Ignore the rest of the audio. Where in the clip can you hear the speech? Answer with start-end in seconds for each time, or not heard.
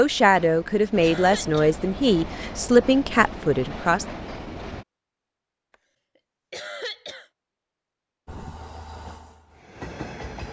0.0-4.0.